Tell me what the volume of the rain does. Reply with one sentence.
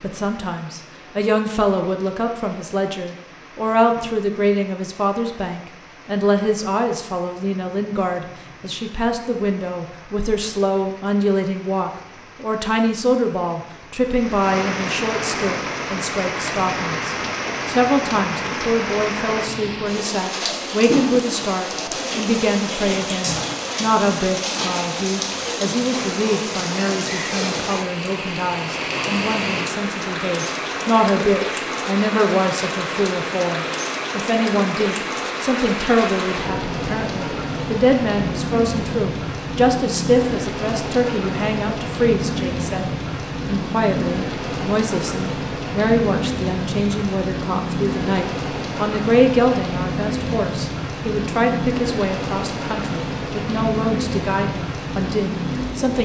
The loudness of the rain goes up.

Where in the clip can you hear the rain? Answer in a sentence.
You can hear the rain from 0.0 to 55.9 s.